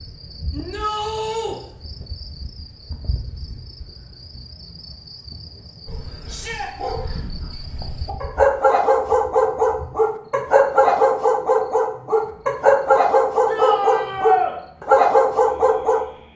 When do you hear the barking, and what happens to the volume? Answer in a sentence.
The barking can be heard from 5.8 to 16.1 s, getting louder.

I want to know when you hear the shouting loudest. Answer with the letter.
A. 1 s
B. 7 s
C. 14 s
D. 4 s
C.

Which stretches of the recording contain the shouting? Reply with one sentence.
The shouting can be heard from 0.5 to 1.6 s, from 6.2 to 6.7 s and from 13.4 to 14.6 s.